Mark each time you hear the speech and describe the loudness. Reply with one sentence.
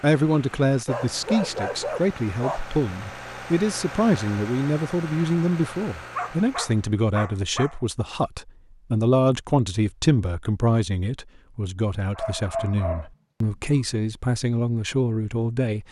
The speech can be heard from 0.0 to 15.8 s, at a steady volume.